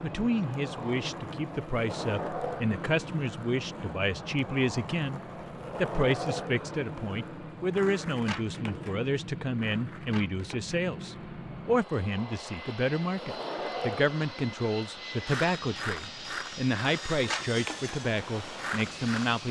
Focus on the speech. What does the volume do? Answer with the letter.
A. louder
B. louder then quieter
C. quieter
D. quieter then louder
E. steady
E.